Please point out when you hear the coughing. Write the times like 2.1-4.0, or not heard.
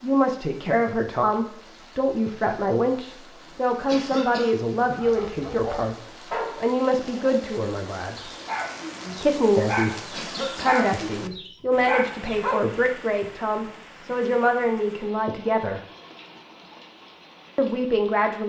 3.9-4.7, 10.1-10.8.